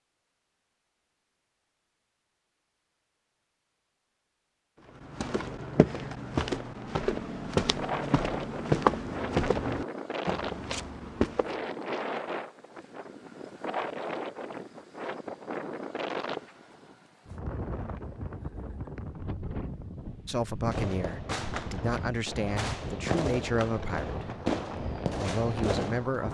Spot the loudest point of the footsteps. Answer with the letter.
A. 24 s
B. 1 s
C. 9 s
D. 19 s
C.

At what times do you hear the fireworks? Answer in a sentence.
You can hear the fireworks from 20.7 to 26.1 s.